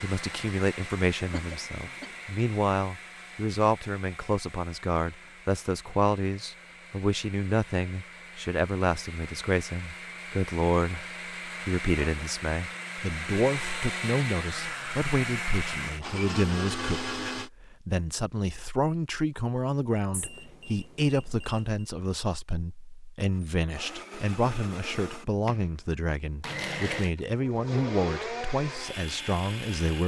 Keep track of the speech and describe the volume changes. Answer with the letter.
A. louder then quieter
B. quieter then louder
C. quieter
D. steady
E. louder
D.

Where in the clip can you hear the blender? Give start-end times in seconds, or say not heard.
0.0-17.5, 23.3-30.0.